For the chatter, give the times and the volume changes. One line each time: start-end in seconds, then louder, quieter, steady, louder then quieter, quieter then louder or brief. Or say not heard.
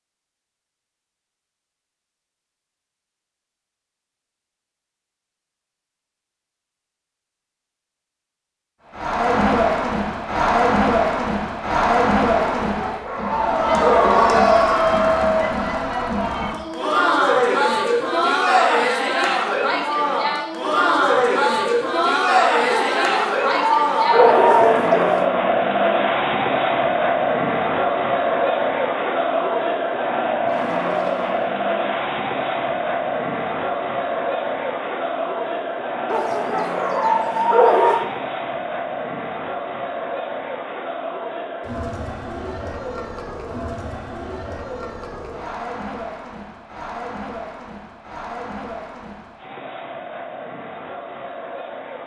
8.9-52.0 quieter.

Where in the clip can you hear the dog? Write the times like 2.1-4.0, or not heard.
12.6-14.6, 22.7-25.2, 36.0-38.0.